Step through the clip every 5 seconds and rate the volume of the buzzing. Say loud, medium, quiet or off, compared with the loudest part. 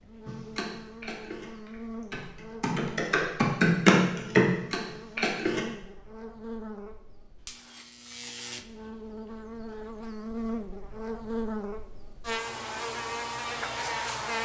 medium, medium, loud.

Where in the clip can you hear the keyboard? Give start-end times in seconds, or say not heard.
0.2-5.6.